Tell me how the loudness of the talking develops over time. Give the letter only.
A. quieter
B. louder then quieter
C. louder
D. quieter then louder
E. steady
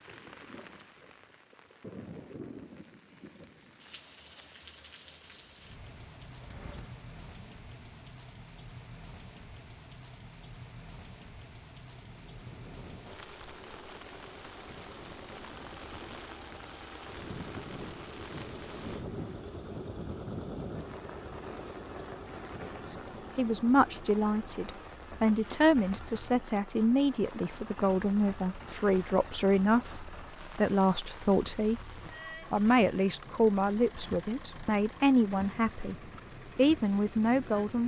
E.